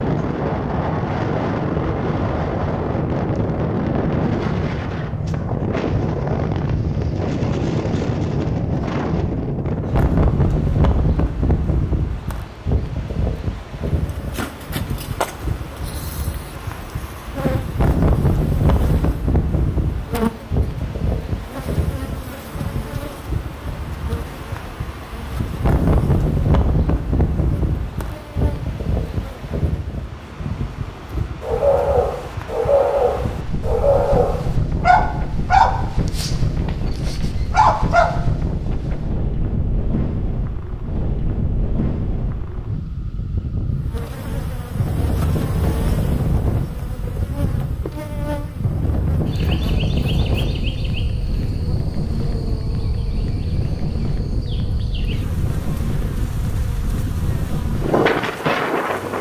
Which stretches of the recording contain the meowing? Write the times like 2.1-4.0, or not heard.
not heard.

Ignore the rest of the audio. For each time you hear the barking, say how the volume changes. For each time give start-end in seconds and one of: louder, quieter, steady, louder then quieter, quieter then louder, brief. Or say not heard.
31.4-38.1 steady.